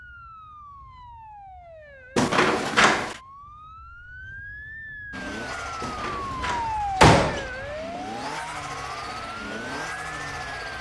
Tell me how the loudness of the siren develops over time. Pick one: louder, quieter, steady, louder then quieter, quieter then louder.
louder then quieter.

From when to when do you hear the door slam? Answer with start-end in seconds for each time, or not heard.
2.1-3.2, 5.8-7.5.